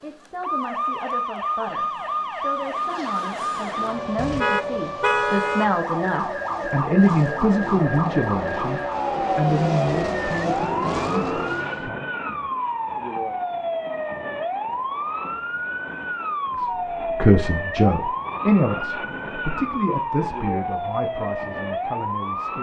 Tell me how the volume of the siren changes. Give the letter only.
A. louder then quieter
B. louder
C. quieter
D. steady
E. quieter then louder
D.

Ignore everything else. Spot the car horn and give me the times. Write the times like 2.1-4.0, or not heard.
4.2-5.7.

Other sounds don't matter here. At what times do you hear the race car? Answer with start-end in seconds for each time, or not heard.
3.4-11.9.